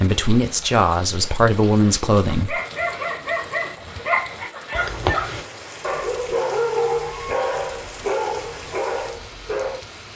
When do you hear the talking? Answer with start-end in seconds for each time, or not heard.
0.0-2.6.